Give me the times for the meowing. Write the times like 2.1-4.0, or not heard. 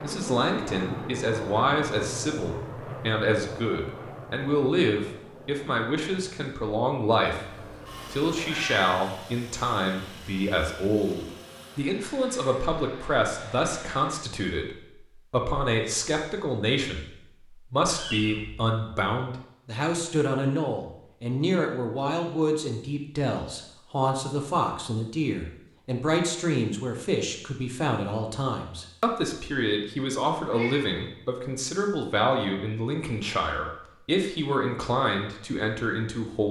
7.3-9.1, 17.9-18.6, 30.5-31.0.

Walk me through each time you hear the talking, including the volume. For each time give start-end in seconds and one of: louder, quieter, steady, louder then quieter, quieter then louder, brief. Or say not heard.
0.0-36.4 steady.